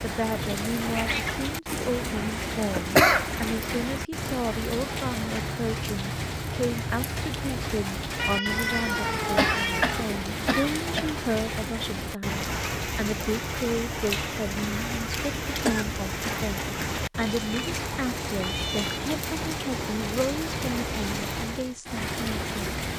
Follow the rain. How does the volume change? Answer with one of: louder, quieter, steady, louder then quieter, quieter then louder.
steady.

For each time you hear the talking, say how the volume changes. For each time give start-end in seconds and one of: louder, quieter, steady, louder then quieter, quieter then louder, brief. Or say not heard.
0.0-22.5 steady.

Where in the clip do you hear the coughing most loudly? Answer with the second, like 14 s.
3 s.